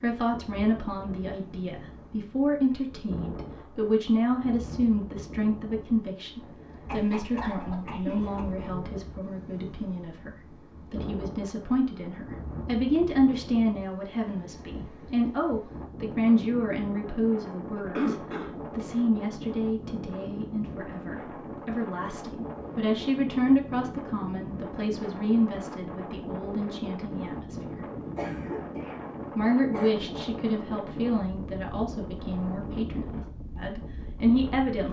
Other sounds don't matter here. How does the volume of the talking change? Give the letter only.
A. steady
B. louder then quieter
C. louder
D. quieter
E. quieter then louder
A.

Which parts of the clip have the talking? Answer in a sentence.
The talking can be heard from 0.0 to 27.9 s and from 29.4 to 34.8 s.